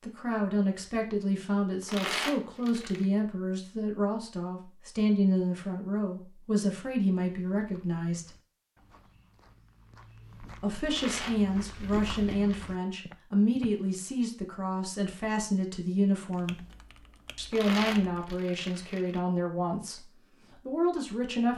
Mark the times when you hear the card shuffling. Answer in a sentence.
You can hear the card shuffling from 1.9 to 3.0 s, from 10.8 to 12.7 s and from 17.5 to 19.2 s.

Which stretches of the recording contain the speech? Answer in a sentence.
The speech can be heard from 0.0 to 8.3 s, from 10.6 to 16.6 s and from 17.4 to 21.5 s.